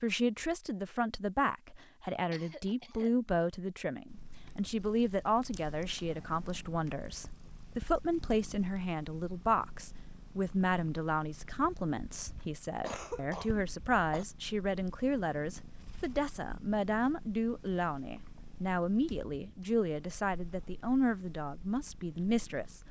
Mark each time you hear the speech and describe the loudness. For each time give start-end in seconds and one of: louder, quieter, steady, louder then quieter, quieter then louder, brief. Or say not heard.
0.0-22.8 steady.